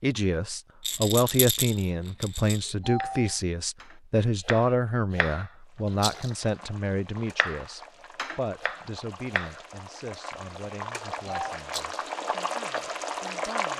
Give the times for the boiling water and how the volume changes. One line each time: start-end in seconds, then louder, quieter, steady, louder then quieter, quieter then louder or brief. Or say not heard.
5.7-13.7 louder.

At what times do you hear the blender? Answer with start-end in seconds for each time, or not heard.
not heard.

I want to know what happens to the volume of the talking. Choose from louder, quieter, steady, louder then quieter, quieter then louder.
quieter.